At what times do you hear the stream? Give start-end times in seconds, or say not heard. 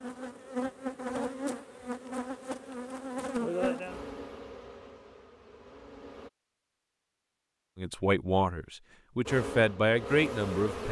not heard.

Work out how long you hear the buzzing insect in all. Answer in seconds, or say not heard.
8 s.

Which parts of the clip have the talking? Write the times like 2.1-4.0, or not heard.
7.8-10.8.